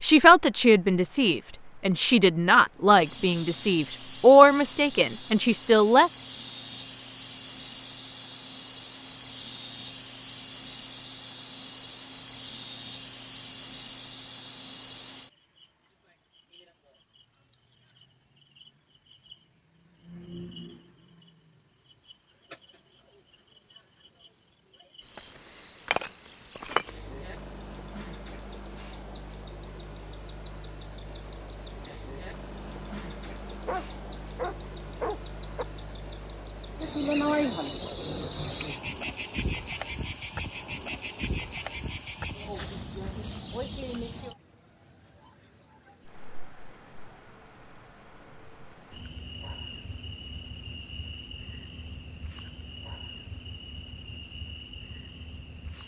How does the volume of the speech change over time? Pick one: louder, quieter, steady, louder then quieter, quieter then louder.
louder then quieter.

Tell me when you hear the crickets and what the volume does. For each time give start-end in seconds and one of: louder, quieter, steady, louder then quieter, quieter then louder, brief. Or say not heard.
0.0-55.8 louder then quieter.